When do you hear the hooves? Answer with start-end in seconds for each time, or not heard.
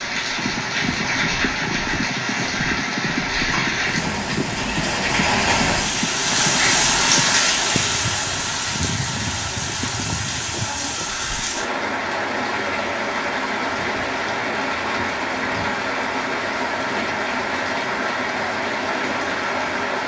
0.1-11.5.